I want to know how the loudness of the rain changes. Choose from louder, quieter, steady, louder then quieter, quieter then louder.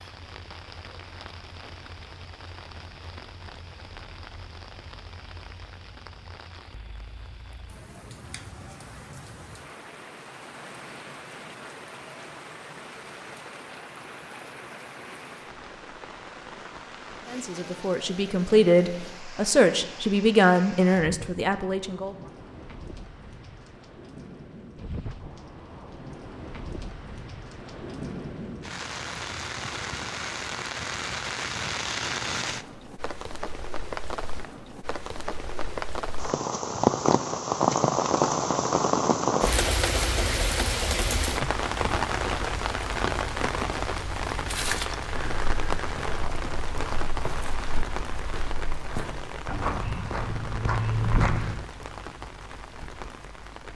louder then quieter.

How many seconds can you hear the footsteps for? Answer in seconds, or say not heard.
7 s.